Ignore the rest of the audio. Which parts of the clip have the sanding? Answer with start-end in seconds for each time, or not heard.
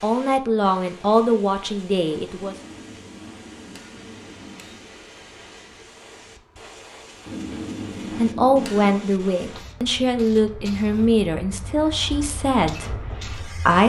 not heard.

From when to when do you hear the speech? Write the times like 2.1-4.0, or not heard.
0.0-2.5, 8.2-13.8.